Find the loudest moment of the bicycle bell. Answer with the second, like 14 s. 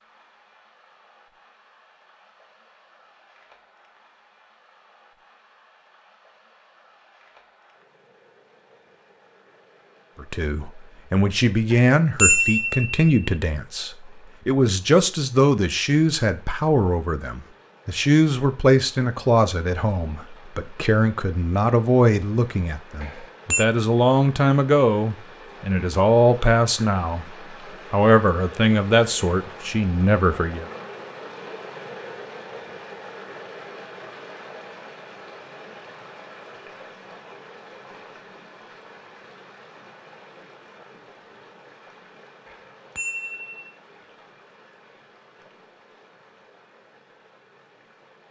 12 s.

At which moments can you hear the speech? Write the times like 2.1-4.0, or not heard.
10.2-27.2, 27.9-30.6.